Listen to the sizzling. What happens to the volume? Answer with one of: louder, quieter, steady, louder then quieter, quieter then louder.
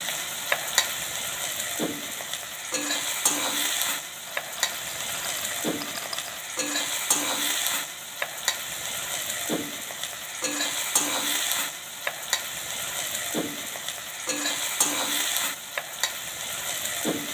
steady.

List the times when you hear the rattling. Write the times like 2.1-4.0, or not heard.
4.2-6.4.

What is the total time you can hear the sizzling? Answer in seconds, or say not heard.
17 s.